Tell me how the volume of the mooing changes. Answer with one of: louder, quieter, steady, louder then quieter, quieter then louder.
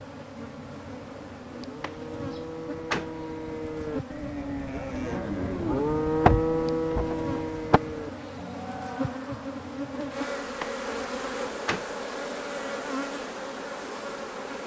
louder then quieter.